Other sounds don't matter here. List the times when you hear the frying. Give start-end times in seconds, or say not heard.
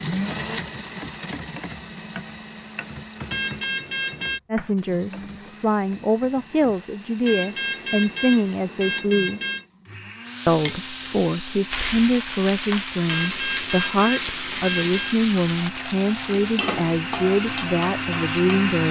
10.2-18.8.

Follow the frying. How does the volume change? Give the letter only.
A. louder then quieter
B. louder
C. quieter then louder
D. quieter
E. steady
E.